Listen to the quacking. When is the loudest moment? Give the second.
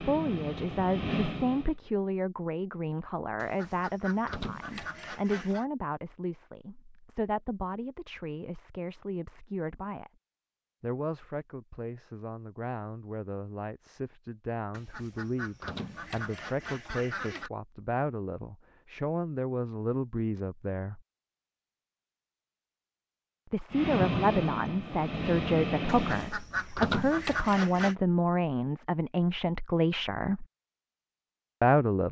27 s.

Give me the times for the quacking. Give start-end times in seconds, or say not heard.
3.4-5.7, 14.7-17.5, 25.9-27.9.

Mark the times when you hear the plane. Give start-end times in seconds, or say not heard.
0.0-1.8, 23.7-26.4.